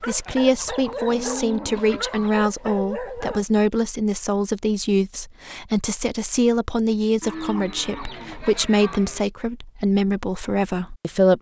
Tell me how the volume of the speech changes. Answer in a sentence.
The volume of the speech stays about the same.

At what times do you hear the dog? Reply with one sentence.
The dog can be heard from 0.0 to 3.5 s.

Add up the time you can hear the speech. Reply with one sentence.
The speech can be heard for 11 seconds in total.